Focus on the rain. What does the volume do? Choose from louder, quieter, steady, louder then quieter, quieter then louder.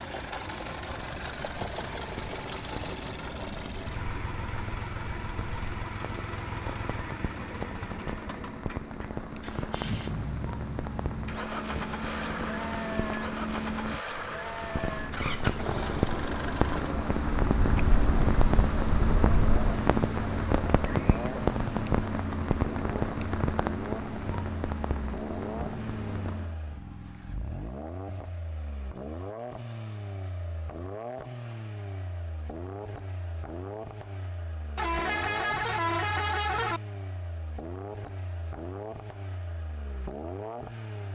louder.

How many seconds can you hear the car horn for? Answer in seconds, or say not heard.
2 s.